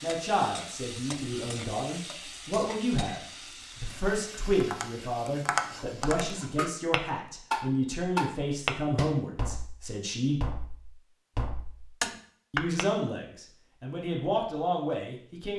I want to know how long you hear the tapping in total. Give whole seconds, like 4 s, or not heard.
8 s.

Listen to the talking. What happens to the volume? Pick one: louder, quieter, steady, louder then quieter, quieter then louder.
steady.